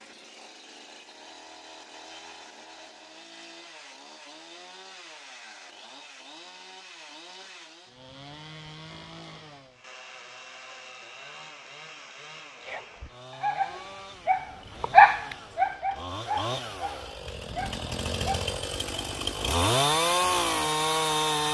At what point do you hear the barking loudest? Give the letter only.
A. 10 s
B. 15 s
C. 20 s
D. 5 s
B.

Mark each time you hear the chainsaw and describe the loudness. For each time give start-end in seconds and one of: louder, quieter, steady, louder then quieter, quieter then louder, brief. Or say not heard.
0.0-21.5 louder.